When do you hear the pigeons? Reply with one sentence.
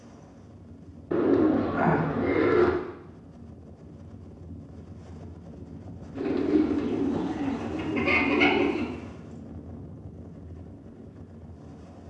You can hear the pigeons from 1.1 to 2.8 s and from 6.2 to 8.9 s.